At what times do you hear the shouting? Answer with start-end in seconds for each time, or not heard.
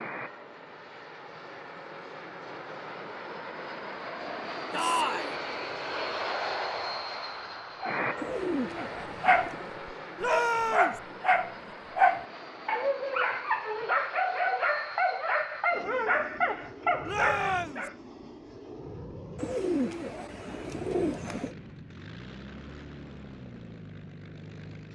4.7-5.3, 10.2-11.0, 17.1-17.9.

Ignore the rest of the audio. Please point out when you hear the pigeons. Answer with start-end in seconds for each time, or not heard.
8.2-9.7, 19.4-21.6.